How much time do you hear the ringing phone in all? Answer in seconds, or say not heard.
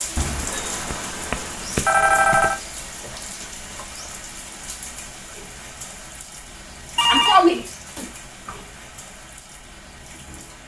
4 s.